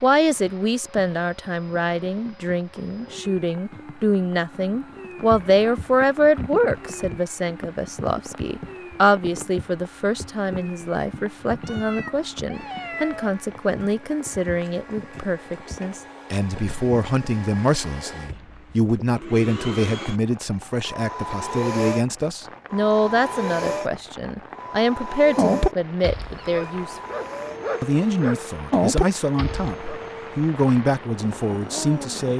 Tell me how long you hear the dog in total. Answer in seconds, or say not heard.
5 s.